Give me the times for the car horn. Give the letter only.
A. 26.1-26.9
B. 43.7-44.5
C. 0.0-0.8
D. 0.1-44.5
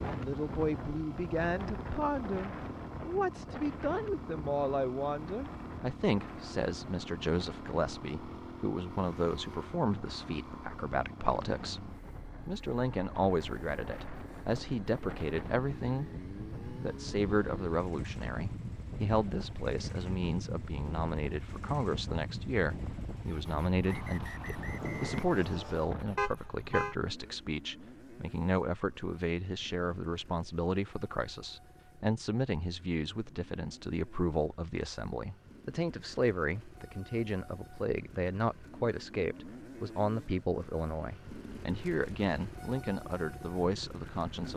A.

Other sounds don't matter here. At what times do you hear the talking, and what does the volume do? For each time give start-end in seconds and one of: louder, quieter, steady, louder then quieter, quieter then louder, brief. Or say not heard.
0.1-44.5 steady.